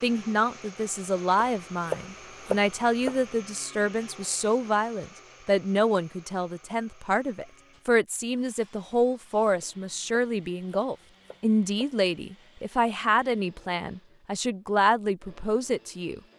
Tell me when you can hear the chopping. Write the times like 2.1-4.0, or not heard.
1.4-3.2, 9.6-11.9.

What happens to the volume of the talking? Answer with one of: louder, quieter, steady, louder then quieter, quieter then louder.
steady.